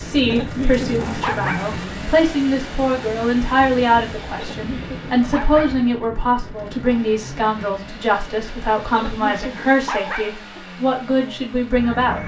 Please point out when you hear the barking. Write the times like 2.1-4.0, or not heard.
0.2-1.8, 4.3-5.8, 8.9-10.6.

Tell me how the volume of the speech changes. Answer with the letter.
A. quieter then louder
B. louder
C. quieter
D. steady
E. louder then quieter
D.